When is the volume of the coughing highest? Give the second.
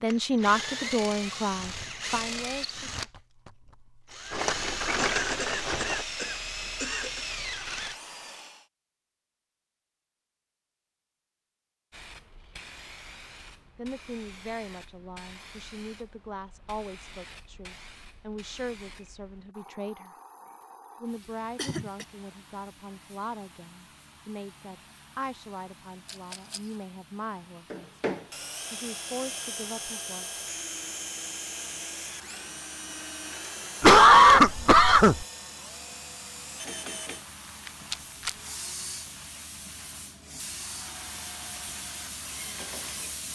34 s.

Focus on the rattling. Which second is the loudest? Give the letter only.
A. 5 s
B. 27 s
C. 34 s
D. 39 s
A.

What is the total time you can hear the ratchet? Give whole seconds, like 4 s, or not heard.
not heard.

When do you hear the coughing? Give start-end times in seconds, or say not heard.
5.1-7.2, 21.6-22.1, 33.8-35.2.